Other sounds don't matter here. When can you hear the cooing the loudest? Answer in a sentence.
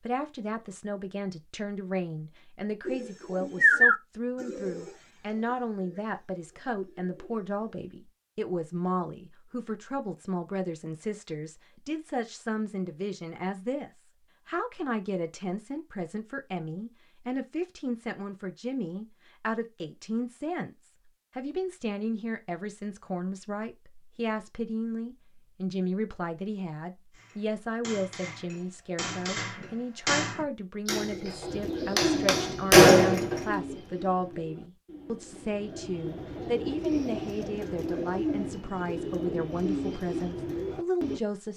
The loudest moment of the cooing is at 4 seconds.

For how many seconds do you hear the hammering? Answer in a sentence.
You can hear the hammering for 6 seconds altogether.